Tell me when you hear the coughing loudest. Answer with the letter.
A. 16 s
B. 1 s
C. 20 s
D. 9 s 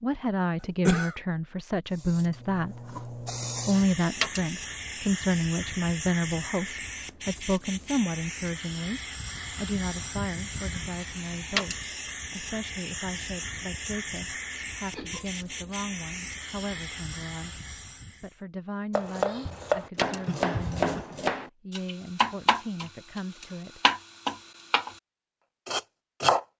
B.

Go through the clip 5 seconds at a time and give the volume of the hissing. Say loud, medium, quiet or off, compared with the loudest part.
loud, loud, loud, loud, off, off.